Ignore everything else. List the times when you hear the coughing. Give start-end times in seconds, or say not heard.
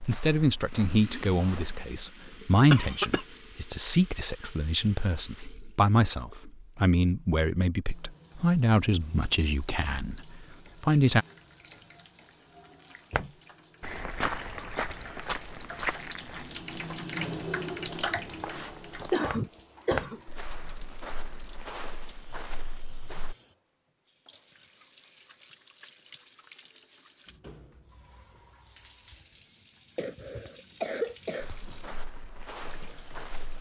2.7-3.2, 18.1-20.2, 29.9-31.6.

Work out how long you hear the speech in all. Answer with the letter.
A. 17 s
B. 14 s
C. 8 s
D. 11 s
D.